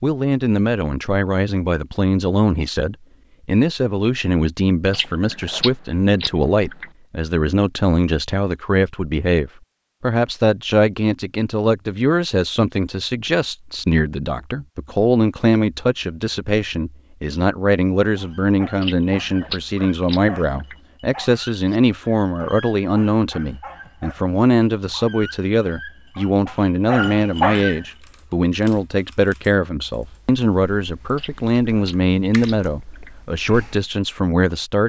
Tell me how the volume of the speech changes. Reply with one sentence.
The volume of the speech stays about the same.